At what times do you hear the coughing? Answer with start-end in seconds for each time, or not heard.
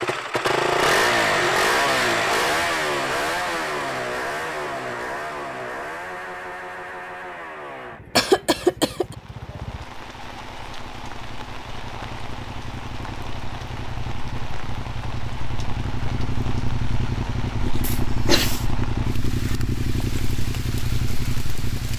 8.2-9.2, 17.8-18.6.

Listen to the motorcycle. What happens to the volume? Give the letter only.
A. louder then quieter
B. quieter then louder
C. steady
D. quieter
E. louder
B.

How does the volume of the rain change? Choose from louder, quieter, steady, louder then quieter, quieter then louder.
steady.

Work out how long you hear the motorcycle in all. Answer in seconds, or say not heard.
22 s.